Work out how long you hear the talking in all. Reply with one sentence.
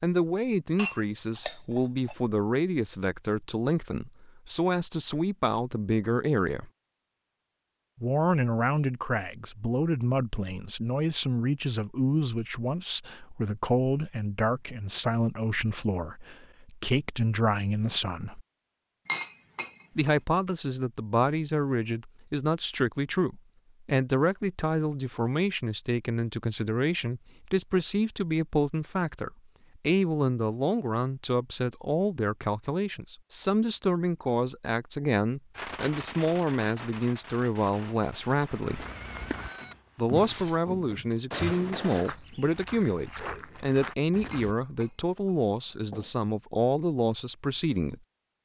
You can hear the talking for 44 seconds altogether.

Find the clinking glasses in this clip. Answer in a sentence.
You can hear the clinking glasses from 0.8 to 2.1 s, from 19.1 to 20.1 s and from 44.3 to 46.1 s.